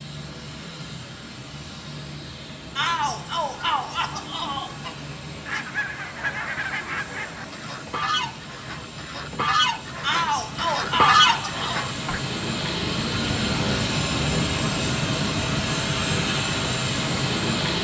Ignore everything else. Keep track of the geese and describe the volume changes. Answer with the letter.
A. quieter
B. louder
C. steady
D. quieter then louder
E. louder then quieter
B.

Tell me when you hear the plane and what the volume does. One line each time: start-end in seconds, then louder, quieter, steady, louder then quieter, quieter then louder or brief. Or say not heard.
0.0-17.7 louder.